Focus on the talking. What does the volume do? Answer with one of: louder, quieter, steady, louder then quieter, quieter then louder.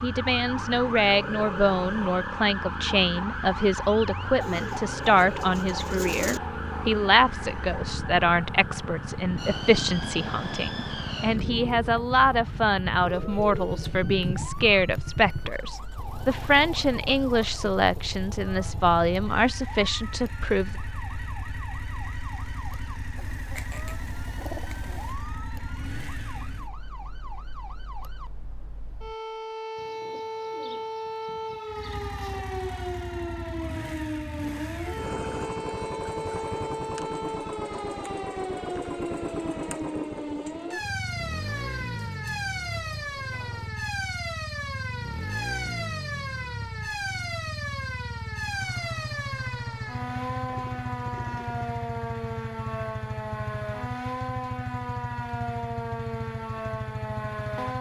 steady.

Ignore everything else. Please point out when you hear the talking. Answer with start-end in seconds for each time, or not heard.
0.0-20.8.